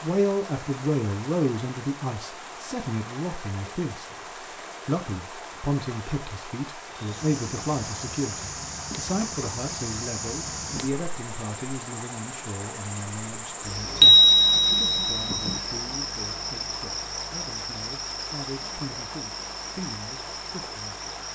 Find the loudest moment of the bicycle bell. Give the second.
14 s.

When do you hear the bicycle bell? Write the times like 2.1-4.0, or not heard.
14.0-15.6.